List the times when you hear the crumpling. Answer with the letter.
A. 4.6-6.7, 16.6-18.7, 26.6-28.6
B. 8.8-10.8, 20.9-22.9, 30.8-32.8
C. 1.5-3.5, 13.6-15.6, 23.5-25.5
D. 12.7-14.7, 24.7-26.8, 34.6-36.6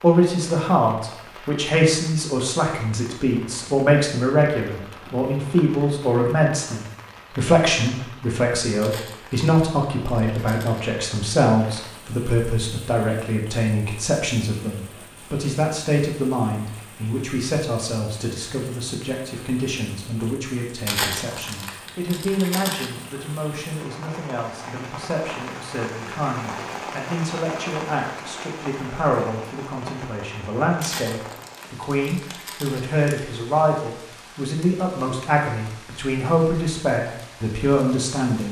B.